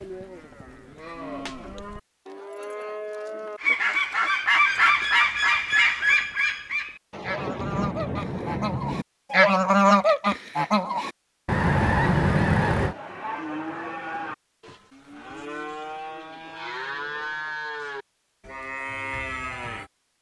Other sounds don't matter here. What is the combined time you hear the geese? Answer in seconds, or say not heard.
9 s.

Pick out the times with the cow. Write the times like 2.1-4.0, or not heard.
0.0-3.8, 12.8-19.9.